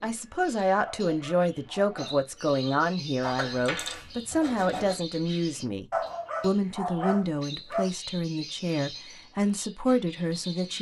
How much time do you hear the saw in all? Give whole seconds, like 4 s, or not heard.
2 s.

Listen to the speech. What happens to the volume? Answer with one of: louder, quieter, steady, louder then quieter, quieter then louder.
steady.